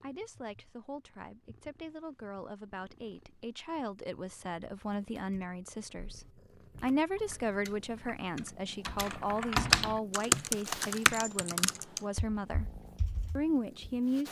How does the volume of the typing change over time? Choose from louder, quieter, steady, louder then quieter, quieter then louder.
louder then quieter.